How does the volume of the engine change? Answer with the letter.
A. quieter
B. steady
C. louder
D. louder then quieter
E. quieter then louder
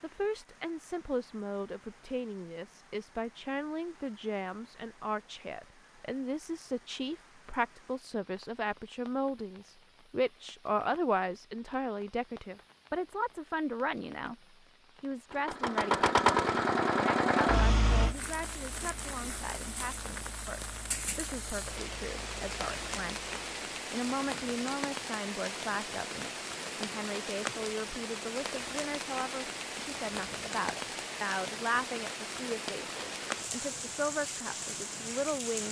A.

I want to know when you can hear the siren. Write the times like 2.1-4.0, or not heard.
not heard.